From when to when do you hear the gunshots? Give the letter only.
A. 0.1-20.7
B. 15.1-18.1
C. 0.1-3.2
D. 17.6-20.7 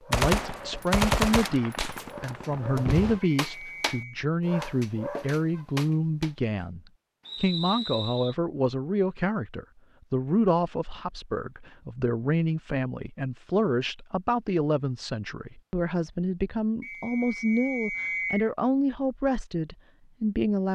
C.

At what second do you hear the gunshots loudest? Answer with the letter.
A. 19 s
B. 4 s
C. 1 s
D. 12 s
C.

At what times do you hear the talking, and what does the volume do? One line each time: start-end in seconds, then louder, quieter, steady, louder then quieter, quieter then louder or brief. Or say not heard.
0.1-20.7 steady.